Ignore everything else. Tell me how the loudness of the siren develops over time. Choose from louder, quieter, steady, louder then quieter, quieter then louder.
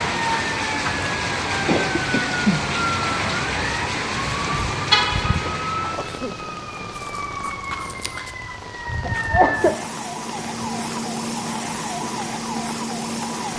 steady.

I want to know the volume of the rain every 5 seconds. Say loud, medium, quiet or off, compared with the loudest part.
loud, medium, quiet.